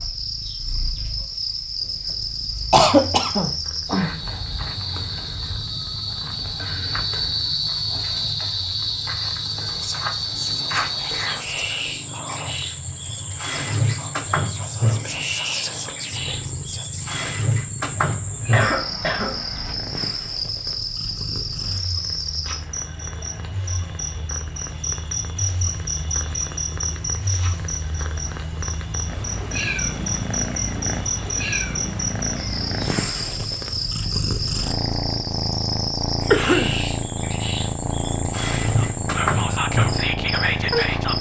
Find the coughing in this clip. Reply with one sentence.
The coughing can be heard from 2.7 to 3.5 s, from 18.5 to 19.8 s and from 36.3 to 36.8 s.